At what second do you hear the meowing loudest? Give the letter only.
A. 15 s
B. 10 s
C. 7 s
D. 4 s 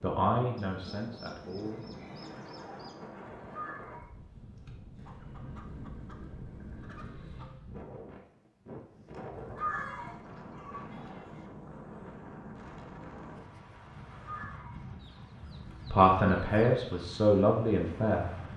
B.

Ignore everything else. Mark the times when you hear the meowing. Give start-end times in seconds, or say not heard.
3.4-4.1, 9.3-10.2, 14.2-14.8.